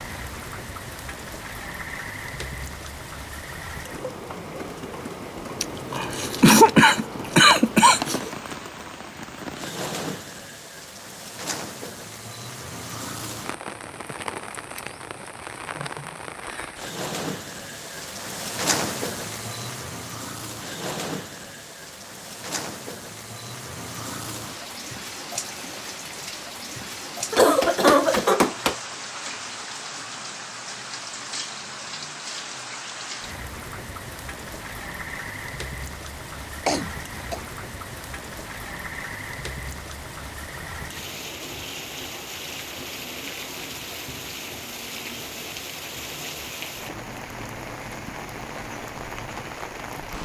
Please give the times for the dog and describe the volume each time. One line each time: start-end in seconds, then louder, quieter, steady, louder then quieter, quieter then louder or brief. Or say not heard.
not heard.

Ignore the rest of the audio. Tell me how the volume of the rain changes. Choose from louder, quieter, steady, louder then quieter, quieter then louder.
steady.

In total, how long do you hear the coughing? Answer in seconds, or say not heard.
5 s.